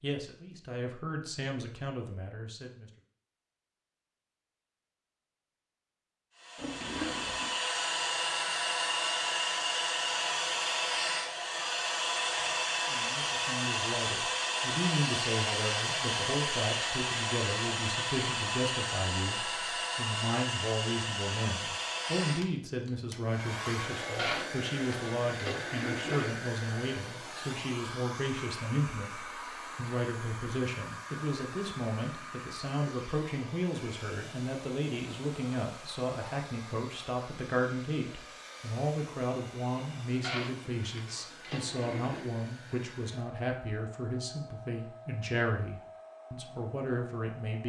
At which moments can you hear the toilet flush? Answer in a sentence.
The toilet flush can be heard from 6.5 to 7.5 s, from 24.1 to 26.4 s and from 40.2 to 42.2 s.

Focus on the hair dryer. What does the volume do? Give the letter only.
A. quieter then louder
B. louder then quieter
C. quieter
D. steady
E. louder
C.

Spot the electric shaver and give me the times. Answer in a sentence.
The electric shaver can't be heard in this clip.